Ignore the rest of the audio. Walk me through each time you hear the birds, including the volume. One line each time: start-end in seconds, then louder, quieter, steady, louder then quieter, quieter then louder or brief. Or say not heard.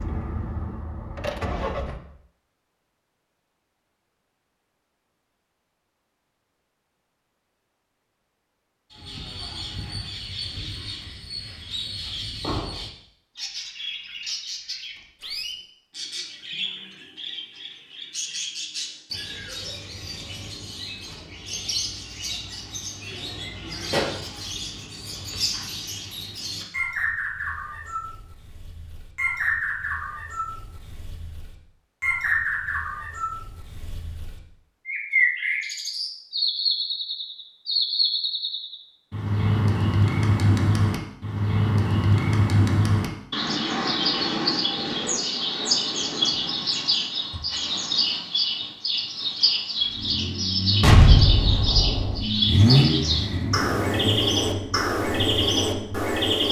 8.9-56.4 louder.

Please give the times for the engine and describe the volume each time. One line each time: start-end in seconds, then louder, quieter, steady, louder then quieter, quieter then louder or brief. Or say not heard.
0.0-2.0 brief
49.8-56.4 louder then quieter.